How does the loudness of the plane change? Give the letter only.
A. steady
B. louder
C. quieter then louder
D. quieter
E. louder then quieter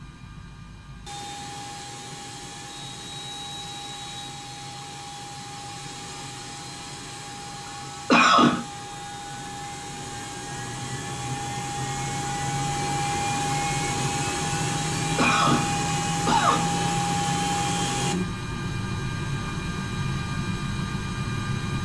B.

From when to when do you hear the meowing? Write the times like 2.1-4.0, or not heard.
not heard.